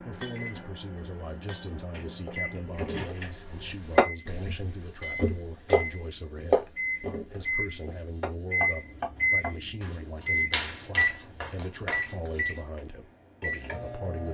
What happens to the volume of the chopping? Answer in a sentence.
The volume of the chopping goes down.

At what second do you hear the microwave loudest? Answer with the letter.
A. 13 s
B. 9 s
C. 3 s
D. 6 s
B.